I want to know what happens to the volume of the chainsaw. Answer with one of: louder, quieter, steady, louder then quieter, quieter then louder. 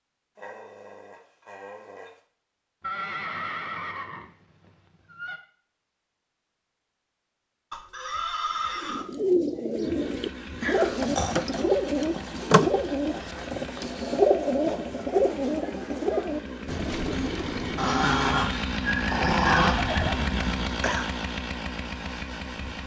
louder.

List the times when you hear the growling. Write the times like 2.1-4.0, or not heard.
0.3-2.2, 10.6-11.4, 17.8-19.8.